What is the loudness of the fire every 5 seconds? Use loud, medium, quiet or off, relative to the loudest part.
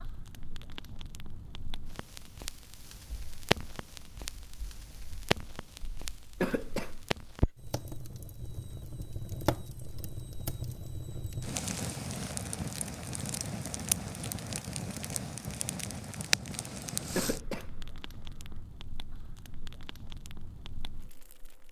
loud, loud, loud, loud, quiet.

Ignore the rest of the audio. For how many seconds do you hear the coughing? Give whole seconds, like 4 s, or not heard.
2 s.